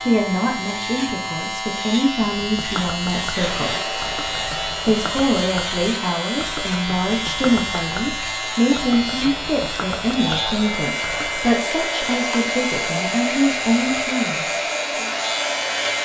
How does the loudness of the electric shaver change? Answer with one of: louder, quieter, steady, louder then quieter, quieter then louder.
steady.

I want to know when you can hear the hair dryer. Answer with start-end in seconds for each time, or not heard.
3.3-16.0.